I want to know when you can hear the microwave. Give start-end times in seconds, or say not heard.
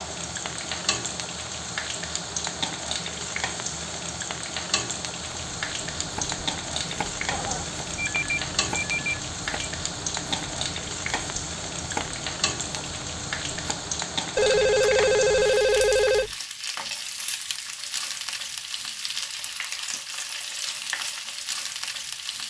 not heard.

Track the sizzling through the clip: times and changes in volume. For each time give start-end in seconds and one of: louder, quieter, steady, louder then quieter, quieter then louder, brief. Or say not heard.
0.0-22.4 steady.